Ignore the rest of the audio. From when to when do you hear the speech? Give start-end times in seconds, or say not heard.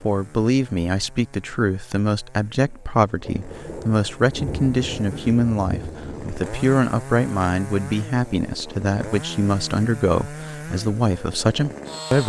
0.0-12.2.